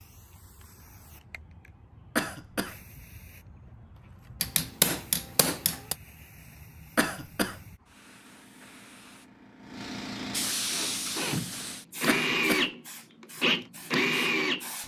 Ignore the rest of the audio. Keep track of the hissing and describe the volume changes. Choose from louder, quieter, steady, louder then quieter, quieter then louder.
louder then quieter.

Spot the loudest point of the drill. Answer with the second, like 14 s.
14 s.